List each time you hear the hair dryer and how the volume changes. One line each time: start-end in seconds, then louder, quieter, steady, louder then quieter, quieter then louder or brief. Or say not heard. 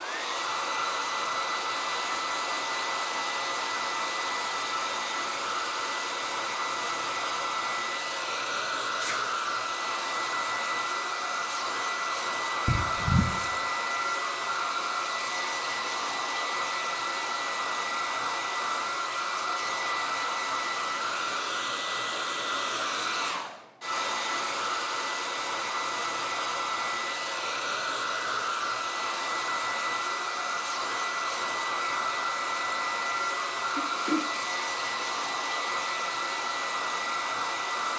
0.0-37.9 steady.